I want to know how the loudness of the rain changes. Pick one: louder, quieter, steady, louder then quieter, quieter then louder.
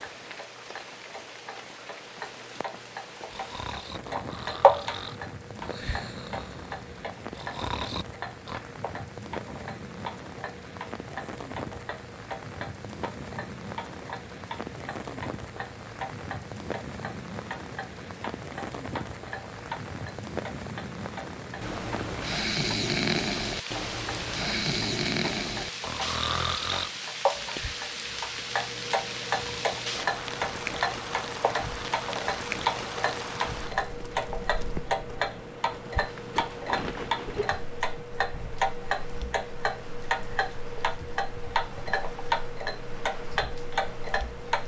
louder then quieter.